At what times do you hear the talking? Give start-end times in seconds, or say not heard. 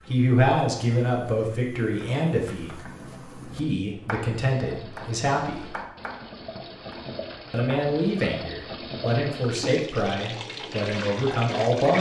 0.1-5.7, 7.5-11.9.